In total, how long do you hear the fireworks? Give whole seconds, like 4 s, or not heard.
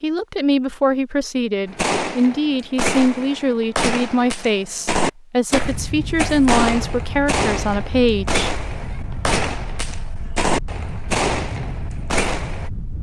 11 s.